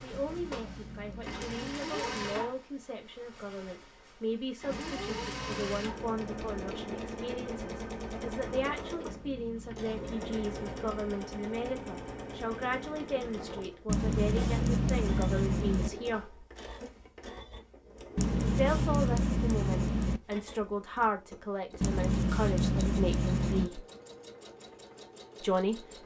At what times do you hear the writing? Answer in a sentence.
The writing can be heard from 0.1 to 1.9 s, from 4.7 to 6.5 s, from 9.1 to 10.9 s, from 13.8 to 15.9 s, from 18.1 to 20.2 s and from 21.8 to 23.7 s.